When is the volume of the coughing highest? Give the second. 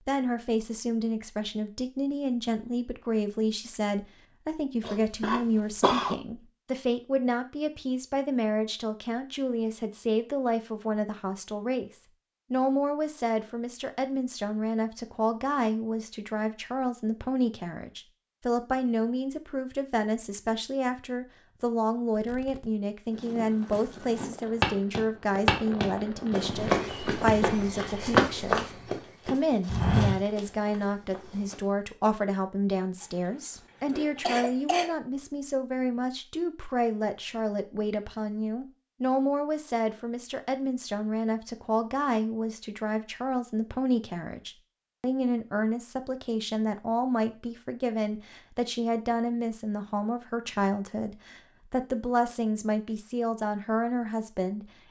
6 s.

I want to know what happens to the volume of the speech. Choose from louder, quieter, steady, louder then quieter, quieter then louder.
steady.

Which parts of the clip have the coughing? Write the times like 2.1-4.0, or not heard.
4.8-6.2, 33.0-35.0.